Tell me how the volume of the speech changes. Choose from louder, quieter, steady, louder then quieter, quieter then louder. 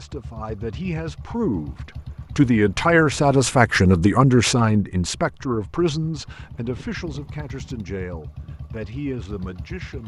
louder then quieter.